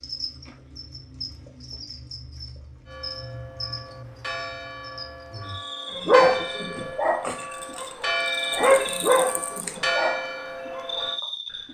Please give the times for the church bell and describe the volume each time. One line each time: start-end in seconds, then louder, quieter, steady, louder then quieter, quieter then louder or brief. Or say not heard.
2.9-11.2 louder.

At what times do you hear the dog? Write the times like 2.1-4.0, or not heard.
6.0-11.1.